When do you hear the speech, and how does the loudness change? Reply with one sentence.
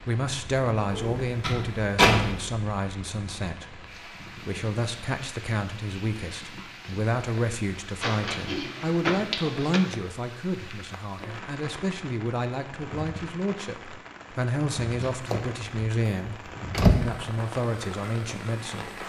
The speech can be heard from 0.0 to 19.0 s, at a steady volume.